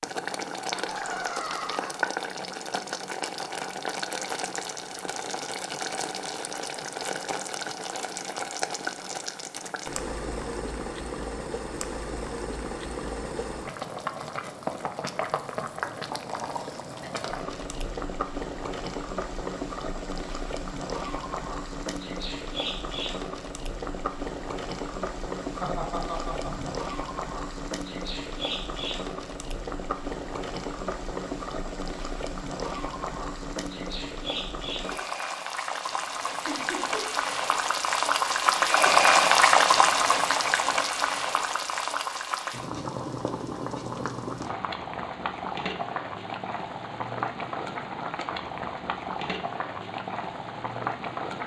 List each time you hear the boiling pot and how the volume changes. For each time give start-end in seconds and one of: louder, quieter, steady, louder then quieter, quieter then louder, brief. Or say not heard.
0.0-51.4 louder then quieter.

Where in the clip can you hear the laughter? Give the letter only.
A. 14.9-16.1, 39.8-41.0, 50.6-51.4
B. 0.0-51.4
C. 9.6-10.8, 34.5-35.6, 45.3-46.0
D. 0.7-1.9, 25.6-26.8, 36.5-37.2
D.